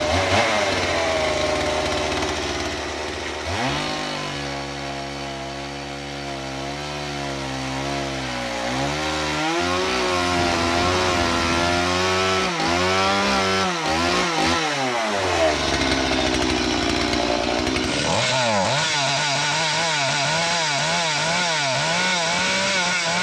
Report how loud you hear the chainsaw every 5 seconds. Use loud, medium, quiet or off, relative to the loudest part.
loud, medium, loud, loud, loud.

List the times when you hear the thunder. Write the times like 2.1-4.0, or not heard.
10.2-11.8.